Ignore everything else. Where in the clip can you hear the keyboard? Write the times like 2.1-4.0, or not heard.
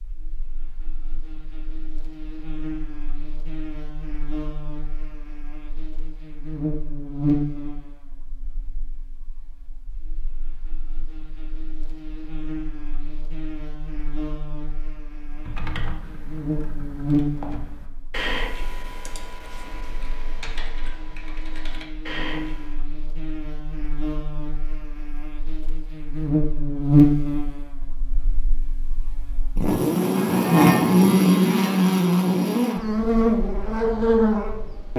15.2-22.8.